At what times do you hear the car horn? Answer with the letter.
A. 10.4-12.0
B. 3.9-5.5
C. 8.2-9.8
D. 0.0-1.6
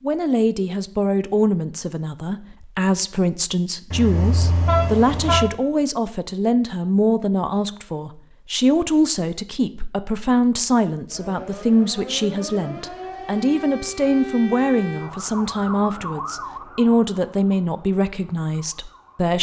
B.